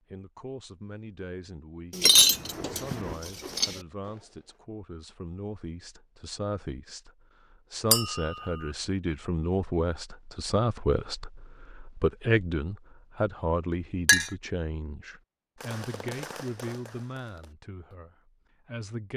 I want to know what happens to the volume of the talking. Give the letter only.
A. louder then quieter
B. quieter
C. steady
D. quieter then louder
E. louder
A.